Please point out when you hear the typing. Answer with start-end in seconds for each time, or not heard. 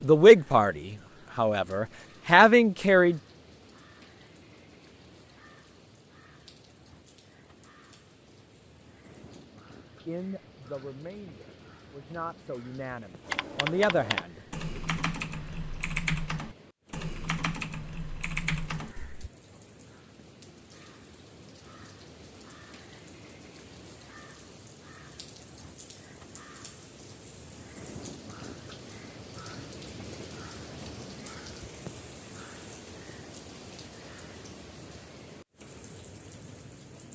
13.2-19.2.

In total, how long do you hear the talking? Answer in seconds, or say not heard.
8 s.